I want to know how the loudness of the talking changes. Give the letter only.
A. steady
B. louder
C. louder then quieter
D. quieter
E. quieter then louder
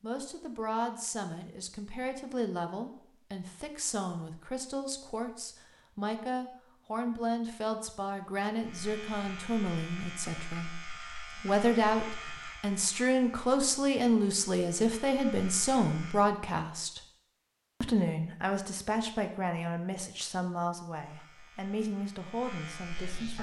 C.